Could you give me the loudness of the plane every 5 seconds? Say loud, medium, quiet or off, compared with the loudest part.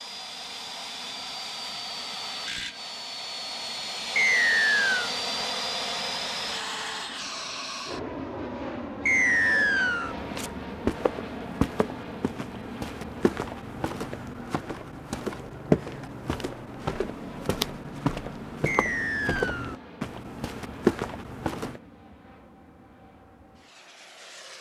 loud, loud, medium, quiet, quiet.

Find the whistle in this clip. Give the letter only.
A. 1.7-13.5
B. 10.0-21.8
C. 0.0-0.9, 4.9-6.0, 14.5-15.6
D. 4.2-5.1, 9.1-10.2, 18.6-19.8
D.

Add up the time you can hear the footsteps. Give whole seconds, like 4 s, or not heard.
12 s.